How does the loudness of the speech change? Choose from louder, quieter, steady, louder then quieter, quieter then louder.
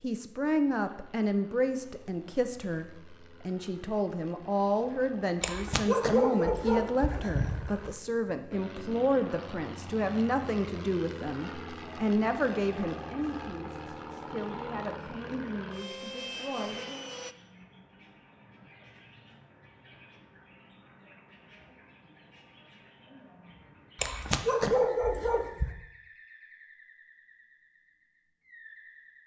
quieter.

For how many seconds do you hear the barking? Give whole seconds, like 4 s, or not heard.
4 s.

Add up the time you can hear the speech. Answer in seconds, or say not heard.
17 s.